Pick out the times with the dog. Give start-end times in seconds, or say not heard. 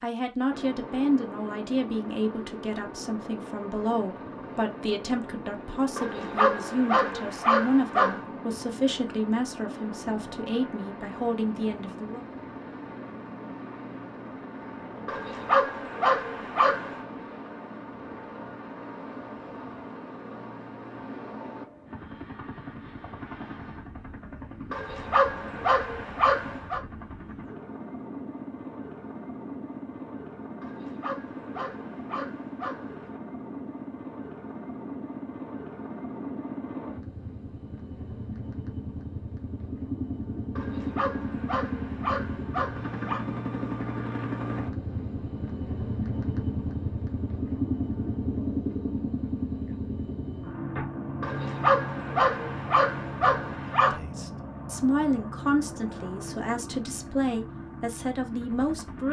6.0-8.2, 15.1-17.0, 24.7-26.8, 30.6-33.2, 40.5-43.2, 51.2-54.0.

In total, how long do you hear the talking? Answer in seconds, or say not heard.
17 s.